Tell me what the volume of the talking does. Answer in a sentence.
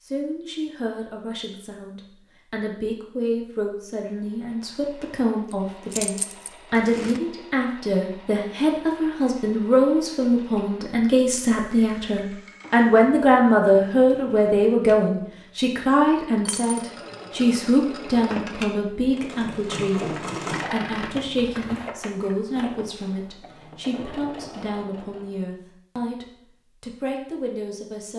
The volume of the talking goes up, then down.